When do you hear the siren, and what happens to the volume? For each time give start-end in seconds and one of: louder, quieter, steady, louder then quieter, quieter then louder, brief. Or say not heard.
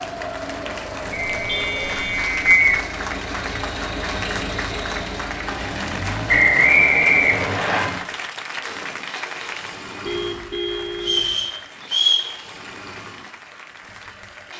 not heard.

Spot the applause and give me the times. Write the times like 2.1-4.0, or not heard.
0.0-14.5.